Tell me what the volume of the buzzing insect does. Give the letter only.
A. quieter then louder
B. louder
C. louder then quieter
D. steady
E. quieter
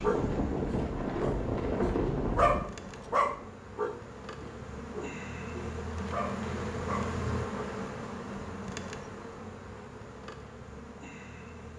C.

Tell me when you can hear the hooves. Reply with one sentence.
You can hear the hooves from 0.0 to 3.5 s.